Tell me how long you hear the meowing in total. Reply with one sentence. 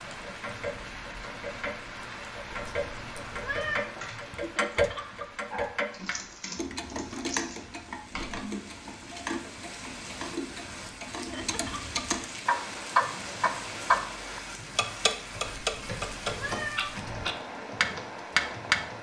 You can hear the meowing for 3 seconds altogether.